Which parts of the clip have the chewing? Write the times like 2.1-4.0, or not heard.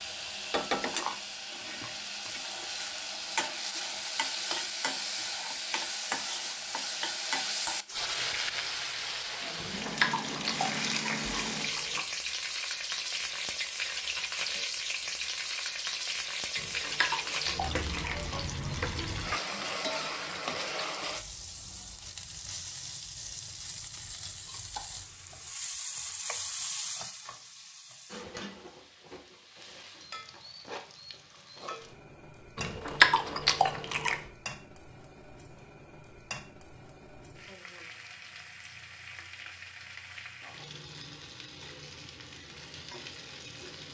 9.6-12.0, 16.6-18.4, 32.5-34.2.